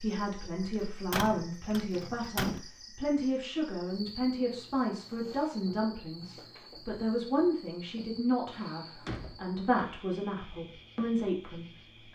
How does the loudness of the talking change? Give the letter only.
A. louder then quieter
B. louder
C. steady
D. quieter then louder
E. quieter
C.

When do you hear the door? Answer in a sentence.
You can hear the door from 1.1 to 2.6 s and from 8.5 to 10.0 s.